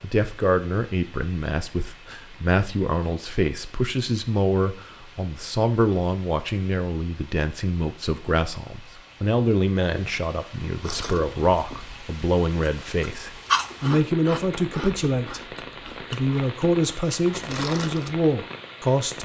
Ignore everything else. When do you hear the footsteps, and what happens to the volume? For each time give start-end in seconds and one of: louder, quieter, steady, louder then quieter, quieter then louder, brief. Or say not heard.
not heard.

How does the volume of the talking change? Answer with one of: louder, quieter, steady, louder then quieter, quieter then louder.
steady.